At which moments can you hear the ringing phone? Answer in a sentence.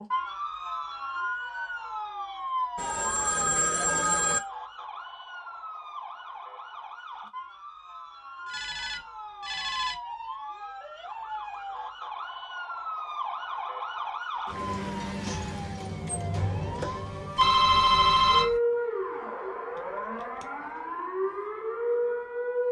The ringing phone can be heard from 2.8 to 4.4 s, from 8.4 to 9.9 s and from 17.4 to 18.6 s.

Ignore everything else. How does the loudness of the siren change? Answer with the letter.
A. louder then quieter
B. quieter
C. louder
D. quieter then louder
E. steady
D.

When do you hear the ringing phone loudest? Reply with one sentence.
The volume of the ringing phone peaks at 18 seconds.